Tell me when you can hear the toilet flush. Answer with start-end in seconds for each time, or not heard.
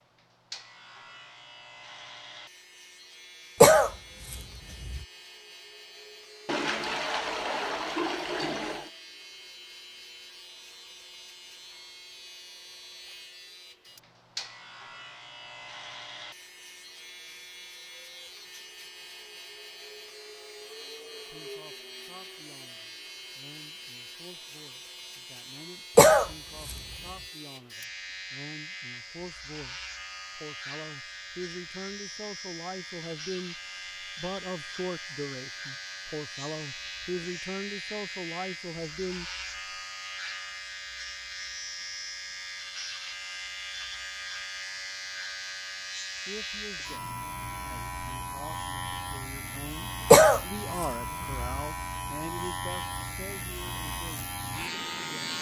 6.5-8.9.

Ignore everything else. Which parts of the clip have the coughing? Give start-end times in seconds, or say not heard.
3.6-5.0, 25.9-26.8, 50.1-51.4.